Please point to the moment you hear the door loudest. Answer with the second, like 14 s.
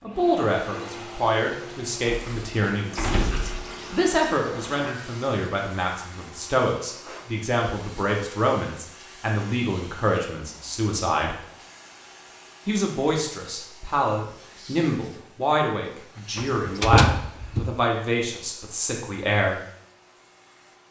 17 s.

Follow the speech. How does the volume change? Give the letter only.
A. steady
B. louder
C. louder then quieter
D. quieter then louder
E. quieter
A.